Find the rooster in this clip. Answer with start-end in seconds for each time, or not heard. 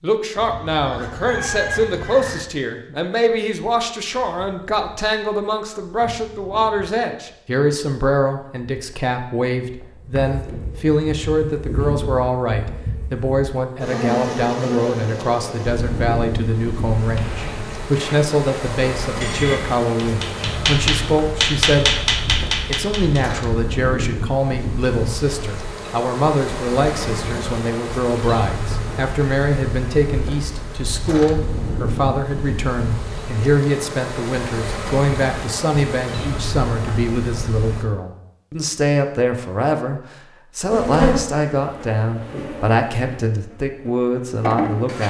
0.3-2.4.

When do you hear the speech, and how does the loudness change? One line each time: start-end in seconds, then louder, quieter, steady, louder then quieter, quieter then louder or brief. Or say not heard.
0.0-45.0 steady.